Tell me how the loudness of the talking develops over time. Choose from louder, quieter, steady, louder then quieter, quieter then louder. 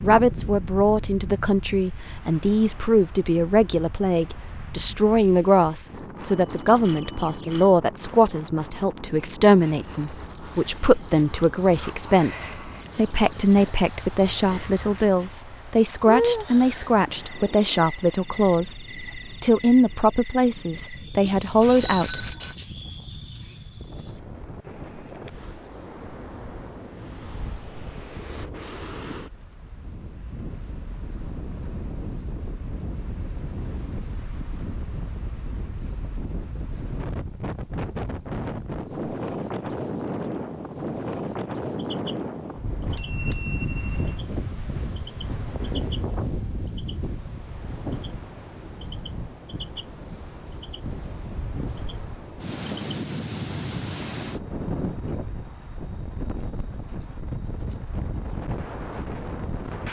steady.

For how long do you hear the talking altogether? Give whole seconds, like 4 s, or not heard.
22 s.